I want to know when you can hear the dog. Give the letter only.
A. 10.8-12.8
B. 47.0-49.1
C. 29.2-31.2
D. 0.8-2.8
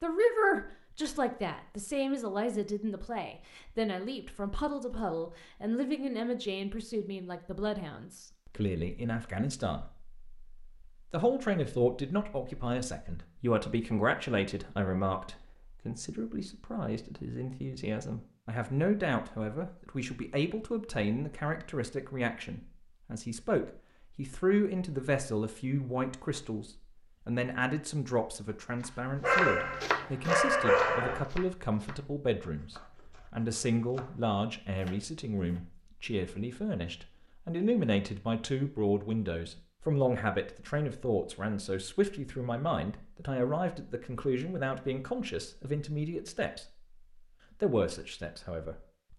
C.